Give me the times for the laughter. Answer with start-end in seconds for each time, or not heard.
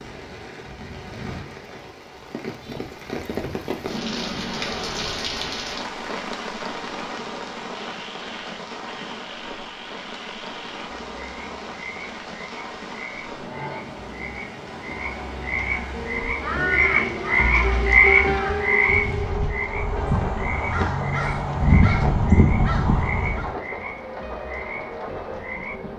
not heard.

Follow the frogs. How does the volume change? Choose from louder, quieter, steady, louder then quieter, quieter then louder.
louder then quieter.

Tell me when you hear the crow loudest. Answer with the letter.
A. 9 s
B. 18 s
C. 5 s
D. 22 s
D.